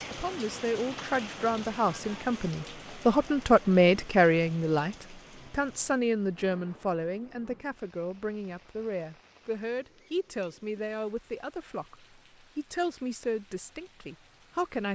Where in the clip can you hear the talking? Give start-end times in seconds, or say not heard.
0.1-14.9.